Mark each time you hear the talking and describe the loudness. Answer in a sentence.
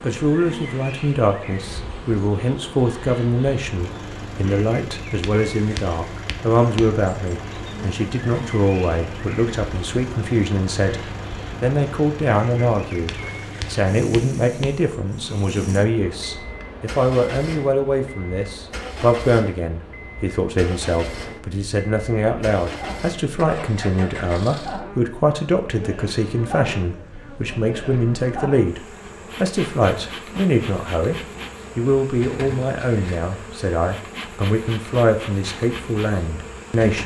You can hear the talking from 0.0 to 11.0 s, at a steady volume; and from 11.6 to 37.0 s, at a steady volume.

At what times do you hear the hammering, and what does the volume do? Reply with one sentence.
You can't hear the hammering here.